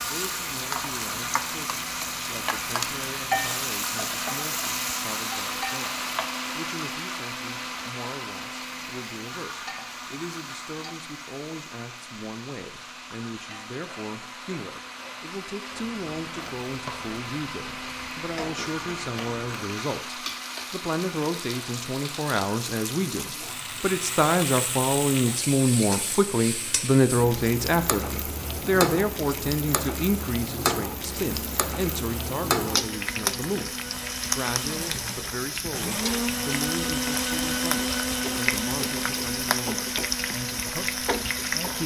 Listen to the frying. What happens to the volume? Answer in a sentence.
The volume of the frying goes down, then up.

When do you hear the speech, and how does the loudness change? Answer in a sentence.
The speech can be heard from 0.0 to 41.8 s, getting louder then quieter.